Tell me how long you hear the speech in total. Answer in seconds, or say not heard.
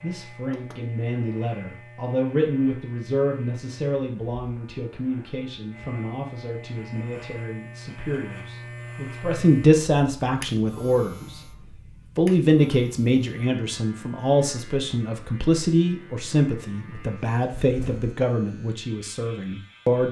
19 s.